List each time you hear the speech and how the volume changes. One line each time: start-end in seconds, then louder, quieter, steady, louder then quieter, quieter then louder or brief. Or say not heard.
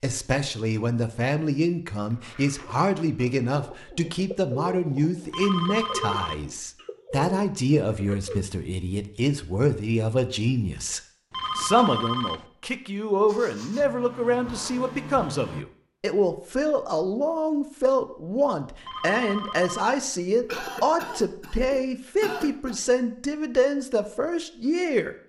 0.0-25.1 steady.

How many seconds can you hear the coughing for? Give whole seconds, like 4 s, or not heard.
2 s.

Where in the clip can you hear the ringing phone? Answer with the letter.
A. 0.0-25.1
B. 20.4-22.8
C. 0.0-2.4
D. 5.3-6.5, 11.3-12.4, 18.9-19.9
D.